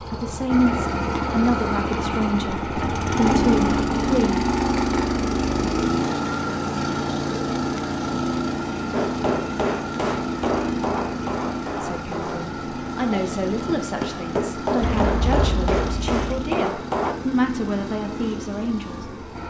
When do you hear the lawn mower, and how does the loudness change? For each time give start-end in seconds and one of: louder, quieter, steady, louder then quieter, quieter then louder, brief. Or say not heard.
0.0-19.4 quieter.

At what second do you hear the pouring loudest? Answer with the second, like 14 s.
15 s.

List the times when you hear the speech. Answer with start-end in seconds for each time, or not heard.
0.0-4.5, 11.8-19.4.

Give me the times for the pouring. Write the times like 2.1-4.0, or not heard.
14.8-16.2.